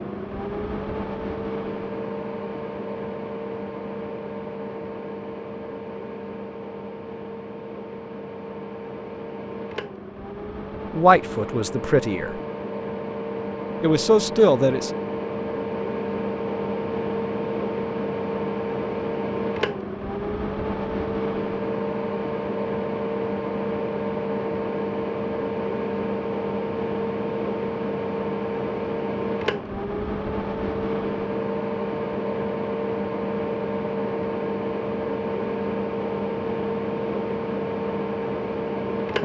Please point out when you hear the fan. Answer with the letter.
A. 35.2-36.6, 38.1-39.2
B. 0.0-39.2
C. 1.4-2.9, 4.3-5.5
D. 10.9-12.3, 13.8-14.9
B.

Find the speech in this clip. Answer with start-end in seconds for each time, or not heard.
10.9-12.3, 13.8-14.9.